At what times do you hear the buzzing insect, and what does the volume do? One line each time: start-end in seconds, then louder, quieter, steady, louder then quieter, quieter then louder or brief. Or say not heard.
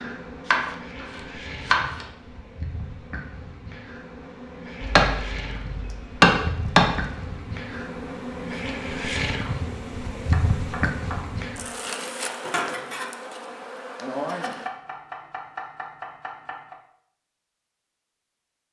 0.0-14.7 louder.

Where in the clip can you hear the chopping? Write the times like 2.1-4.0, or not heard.
0.5-2.0, 4.8-7.0, 9.4-11.4, 14.4-16.8.